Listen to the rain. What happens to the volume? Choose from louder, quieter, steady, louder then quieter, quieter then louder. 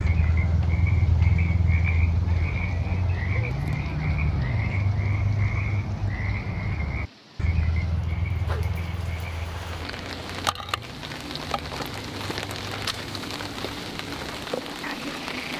louder.